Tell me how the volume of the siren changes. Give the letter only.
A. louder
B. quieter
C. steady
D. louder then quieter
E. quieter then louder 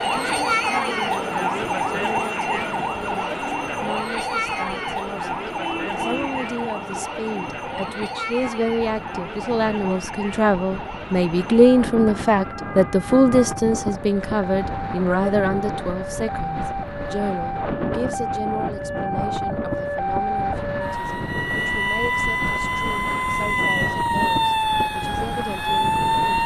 E.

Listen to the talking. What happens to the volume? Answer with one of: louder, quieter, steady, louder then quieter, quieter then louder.
louder then quieter.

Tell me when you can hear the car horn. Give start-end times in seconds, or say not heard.
5.5-6.3.